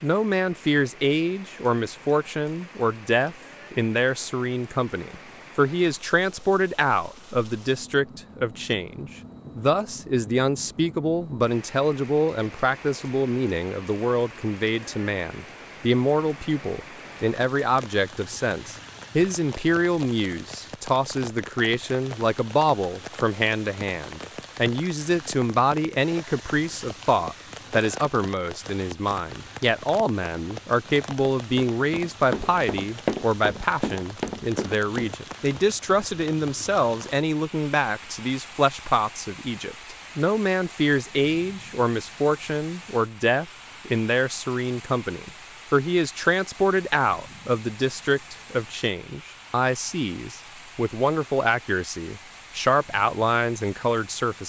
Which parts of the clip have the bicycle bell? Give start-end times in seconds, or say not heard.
not heard.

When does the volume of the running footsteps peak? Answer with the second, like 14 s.
33 s.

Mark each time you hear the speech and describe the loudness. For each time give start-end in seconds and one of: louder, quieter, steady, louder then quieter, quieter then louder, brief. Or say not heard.
0.0-54.4 steady.